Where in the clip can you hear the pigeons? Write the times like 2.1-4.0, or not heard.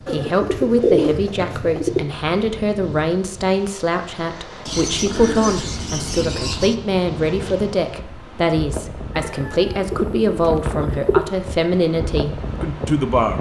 0.1-2.0, 4.7-6.8, 9.2-11.3.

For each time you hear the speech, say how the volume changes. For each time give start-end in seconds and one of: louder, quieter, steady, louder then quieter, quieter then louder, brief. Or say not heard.
0.0-13.3 steady.